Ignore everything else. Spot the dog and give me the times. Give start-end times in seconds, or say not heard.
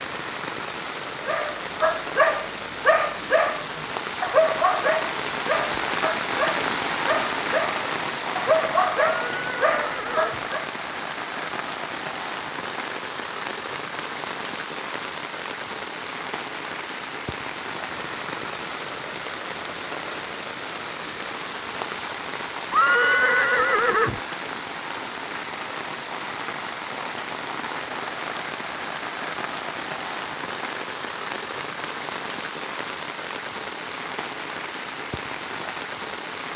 1.2-10.7.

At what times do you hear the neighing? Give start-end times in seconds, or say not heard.
9.2-10.4, 22.7-24.2.